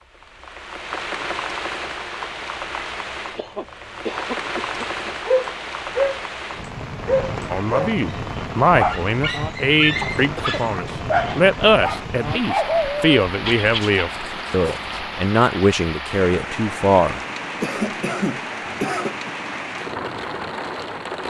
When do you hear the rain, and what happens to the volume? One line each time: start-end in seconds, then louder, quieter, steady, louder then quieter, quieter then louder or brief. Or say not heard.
0.0-21.2 steady.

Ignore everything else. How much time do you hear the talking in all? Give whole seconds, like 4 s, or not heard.
10 s.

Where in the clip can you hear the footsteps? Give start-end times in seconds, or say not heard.
not heard.